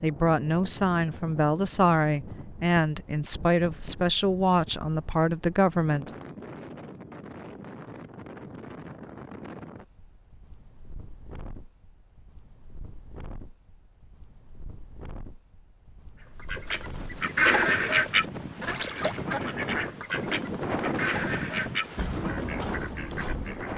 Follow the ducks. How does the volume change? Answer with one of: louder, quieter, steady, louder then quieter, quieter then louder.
quieter.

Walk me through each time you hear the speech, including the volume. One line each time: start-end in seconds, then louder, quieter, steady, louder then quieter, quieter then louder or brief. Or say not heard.
0.0-6.1 steady.